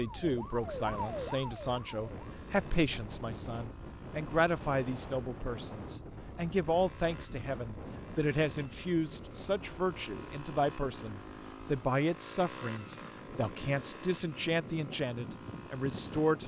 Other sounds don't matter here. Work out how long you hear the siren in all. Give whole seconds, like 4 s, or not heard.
2 s.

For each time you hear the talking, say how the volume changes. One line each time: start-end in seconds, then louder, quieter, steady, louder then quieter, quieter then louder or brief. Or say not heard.
0.0-16.4 steady.